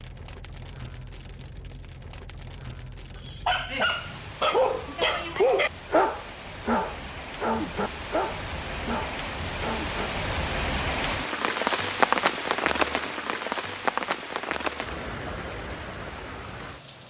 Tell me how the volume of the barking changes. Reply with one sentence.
The volume of the barking goes down.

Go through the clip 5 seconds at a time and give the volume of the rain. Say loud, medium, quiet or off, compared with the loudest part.
quiet, medium, loud, medium.